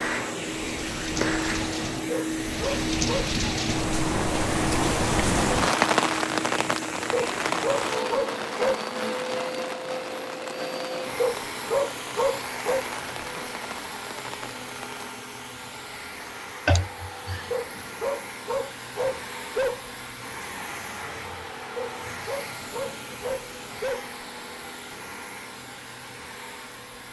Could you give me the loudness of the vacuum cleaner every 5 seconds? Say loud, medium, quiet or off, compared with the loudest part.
loud, loud, medium, medium, medium, medium.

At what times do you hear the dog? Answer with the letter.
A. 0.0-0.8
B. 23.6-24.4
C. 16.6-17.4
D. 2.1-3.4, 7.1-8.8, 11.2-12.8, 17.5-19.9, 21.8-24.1
D.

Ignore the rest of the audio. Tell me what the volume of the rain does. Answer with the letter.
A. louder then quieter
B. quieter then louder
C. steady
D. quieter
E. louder
A.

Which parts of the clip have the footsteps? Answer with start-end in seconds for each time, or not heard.
not heard.